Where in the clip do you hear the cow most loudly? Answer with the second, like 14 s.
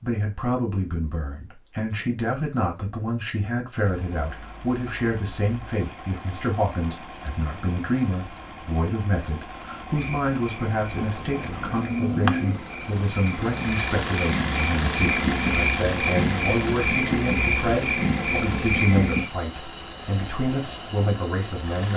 12 s.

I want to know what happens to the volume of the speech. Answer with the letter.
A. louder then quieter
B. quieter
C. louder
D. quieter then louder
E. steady
E.